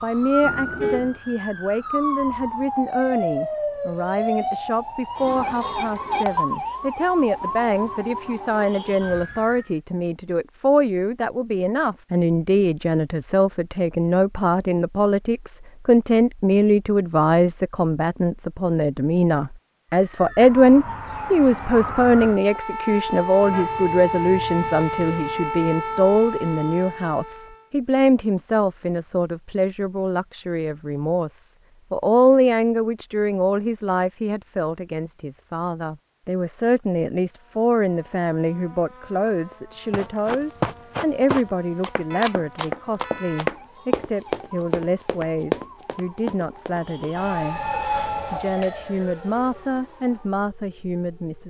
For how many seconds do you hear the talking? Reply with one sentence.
The talking can be heard for 51 seconds in total.